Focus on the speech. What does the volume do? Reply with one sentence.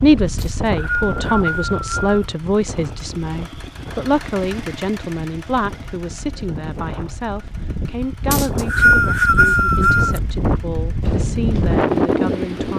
The volume of the speech goes down.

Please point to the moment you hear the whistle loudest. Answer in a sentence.
The loudest moment of the whistle is at 9 seconds.